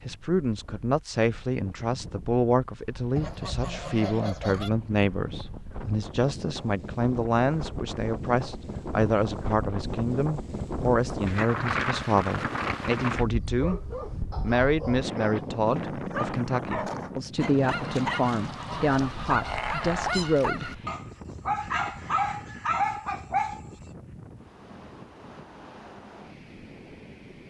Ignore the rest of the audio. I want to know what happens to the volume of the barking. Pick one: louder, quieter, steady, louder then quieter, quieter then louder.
louder.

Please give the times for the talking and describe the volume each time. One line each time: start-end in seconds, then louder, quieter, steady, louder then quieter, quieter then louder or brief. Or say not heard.
0.1-20.6 steady.